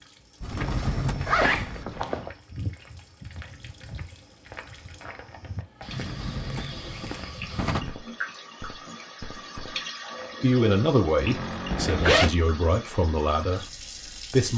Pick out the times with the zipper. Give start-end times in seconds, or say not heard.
0.6-2.3, 11.7-12.3.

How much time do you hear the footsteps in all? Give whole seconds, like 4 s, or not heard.
10 s.